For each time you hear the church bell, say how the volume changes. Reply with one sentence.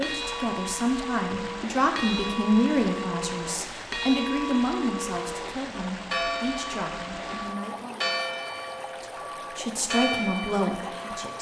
The church bell can be heard from 0.0 to 11.3 s, at a steady volume.